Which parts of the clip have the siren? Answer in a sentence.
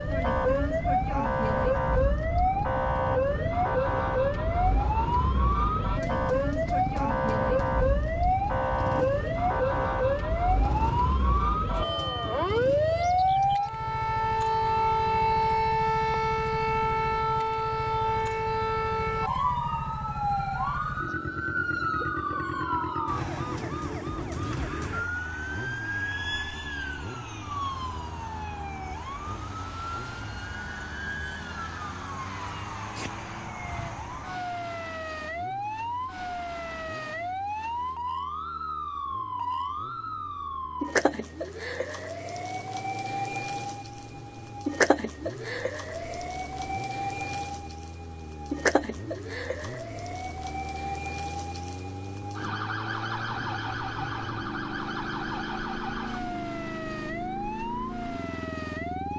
You can hear the siren from 0.0 to 59.1 s.